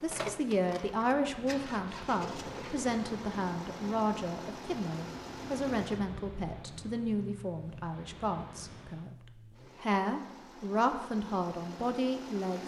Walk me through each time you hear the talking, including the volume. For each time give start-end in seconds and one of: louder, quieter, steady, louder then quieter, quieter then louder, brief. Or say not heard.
0.0-12.6 quieter then louder.